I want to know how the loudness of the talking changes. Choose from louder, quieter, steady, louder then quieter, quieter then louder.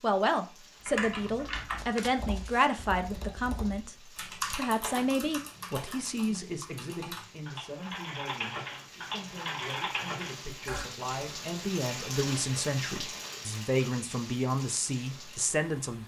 quieter then louder.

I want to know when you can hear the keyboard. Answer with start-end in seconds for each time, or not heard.
0.8-10.8.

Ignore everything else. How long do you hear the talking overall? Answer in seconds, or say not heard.
16 s.